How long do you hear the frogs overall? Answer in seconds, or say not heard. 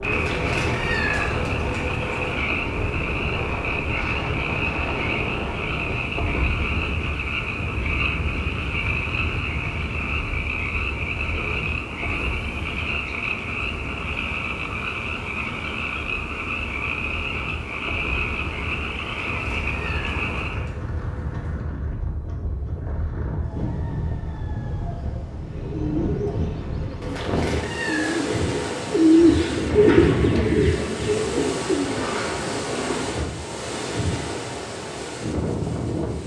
21 s.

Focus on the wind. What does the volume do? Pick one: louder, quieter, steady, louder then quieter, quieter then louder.
quieter then louder.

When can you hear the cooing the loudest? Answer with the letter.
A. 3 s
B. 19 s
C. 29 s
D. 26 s
C.